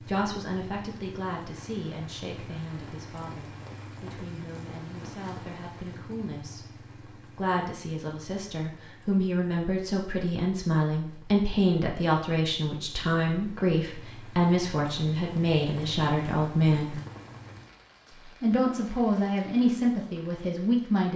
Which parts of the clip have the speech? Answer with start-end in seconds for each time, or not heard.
0.1-17.0, 18.4-21.1.